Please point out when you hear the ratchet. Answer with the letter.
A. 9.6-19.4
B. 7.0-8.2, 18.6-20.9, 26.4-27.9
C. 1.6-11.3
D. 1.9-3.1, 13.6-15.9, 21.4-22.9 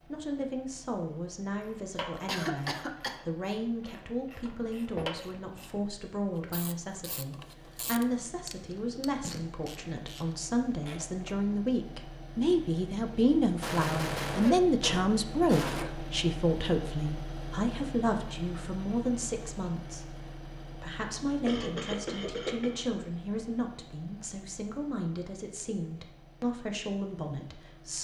C.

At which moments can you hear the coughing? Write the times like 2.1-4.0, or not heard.
1.9-3.1, 13.6-15.9, 21.4-22.9.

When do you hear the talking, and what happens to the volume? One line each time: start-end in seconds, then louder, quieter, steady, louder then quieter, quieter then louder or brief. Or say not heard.
0.1-27.9 louder then quieter.